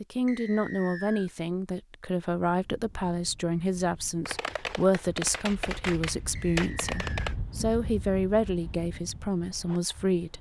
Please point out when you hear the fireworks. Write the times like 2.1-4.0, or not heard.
4.2-7.3.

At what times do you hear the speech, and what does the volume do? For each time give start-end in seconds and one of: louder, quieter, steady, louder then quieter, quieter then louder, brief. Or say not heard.
0.0-10.3 steady.